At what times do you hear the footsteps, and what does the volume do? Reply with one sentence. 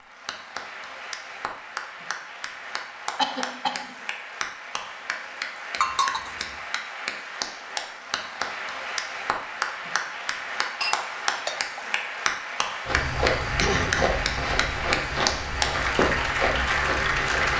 You can hear the footsteps from 12.8 to 17.5 s, at a steady volume.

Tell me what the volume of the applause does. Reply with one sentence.
The volume of the applause goes up.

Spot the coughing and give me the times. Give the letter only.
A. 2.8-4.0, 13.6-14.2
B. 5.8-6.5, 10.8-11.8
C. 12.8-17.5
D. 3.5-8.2
A.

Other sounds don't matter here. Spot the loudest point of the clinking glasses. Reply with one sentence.
The loudest moment of the clinking glasses is at 6 seconds.